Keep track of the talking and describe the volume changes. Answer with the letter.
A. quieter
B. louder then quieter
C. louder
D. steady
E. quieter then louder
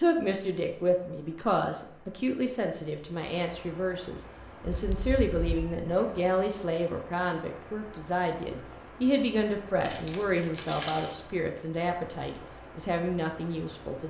D.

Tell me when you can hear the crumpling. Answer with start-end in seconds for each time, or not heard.
9.8-11.2.